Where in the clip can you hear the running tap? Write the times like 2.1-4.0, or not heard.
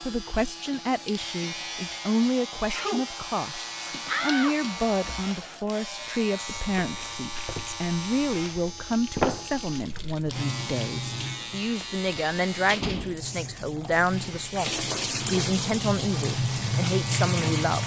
0.0-17.8.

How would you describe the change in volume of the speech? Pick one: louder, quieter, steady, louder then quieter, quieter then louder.
steady.